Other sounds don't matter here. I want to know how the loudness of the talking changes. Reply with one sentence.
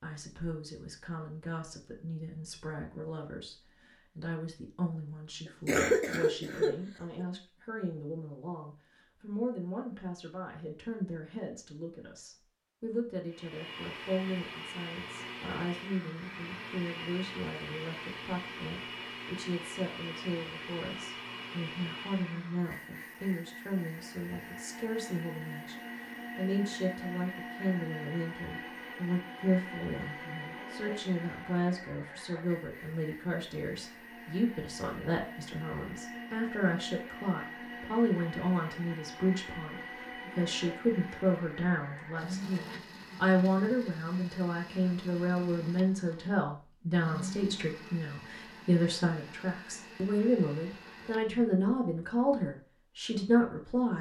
The volume of the talking goes up.